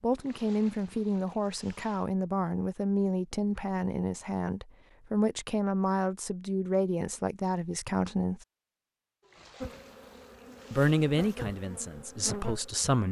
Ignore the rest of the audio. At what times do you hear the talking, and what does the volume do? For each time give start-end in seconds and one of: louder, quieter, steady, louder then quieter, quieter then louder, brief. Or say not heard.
0.0-8.4 steady
10.7-13.0 brief.